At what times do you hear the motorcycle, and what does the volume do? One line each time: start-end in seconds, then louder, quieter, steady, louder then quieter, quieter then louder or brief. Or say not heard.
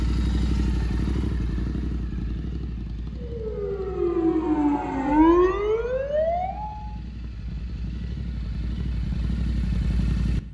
0.0-10.4 quieter then louder.